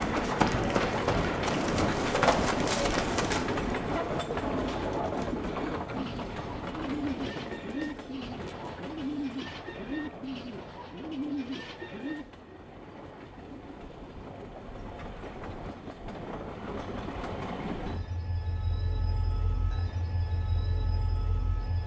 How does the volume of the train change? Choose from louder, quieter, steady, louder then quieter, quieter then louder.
quieter then louder.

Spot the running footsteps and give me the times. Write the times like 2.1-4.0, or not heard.
0.0-3.5.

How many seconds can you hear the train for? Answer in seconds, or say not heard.
22 s.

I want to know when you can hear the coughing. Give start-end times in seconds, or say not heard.
not heard.